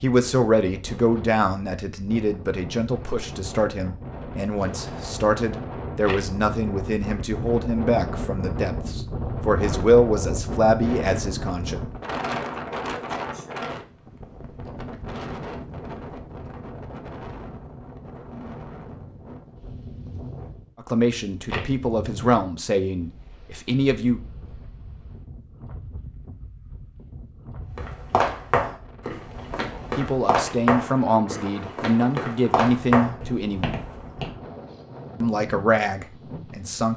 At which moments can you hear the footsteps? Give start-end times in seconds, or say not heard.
27.8-34.4.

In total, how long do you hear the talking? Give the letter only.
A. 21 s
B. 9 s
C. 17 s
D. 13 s
A.